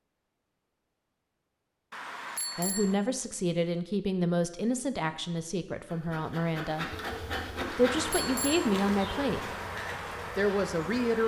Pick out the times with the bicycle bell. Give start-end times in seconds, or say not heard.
1.9-3.0, 7.7-8.7.